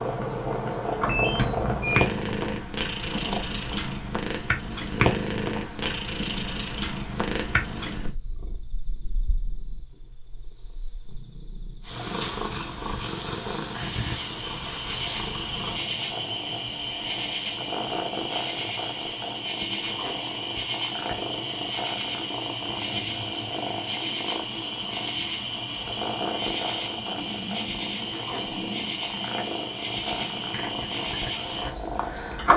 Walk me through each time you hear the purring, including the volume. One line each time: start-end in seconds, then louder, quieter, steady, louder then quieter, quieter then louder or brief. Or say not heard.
0.0-32.5 quieter.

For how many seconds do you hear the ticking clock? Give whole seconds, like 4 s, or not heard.
not heard.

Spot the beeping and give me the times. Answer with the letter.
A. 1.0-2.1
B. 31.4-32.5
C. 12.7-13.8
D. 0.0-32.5
A.